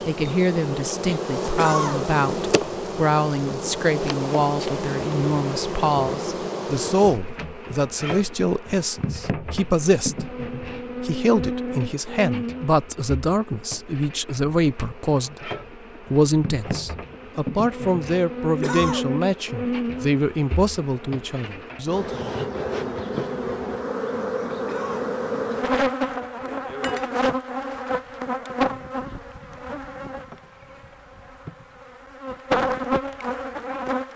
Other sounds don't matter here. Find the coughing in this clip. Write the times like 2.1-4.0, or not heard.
1.6-2.1, 18.6-19.1, 24.6-25.1.